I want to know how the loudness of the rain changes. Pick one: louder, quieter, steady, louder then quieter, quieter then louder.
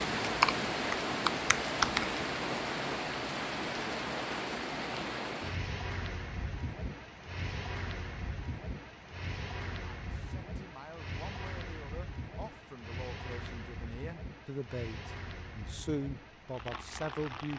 quieter.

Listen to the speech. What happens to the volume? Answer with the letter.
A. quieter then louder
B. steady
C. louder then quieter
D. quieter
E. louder
E.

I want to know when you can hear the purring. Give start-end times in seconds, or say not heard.
not heard.